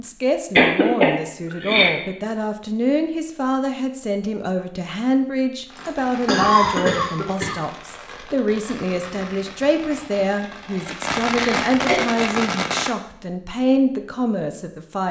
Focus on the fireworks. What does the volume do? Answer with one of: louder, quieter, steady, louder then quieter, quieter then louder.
louder.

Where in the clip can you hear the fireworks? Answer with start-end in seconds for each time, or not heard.
5.7-12.9.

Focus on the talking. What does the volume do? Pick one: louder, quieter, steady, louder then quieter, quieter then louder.
steady.